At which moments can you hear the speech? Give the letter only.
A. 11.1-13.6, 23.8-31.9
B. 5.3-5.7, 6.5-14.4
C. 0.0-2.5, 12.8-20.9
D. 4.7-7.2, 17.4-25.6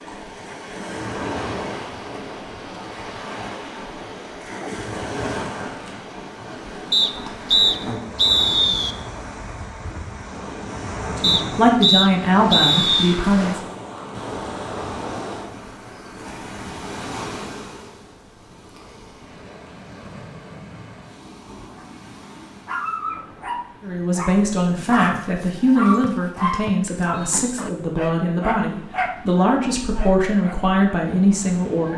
A.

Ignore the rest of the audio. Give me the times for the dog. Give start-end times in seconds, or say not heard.
21.4-21.9, 22.6-30.6.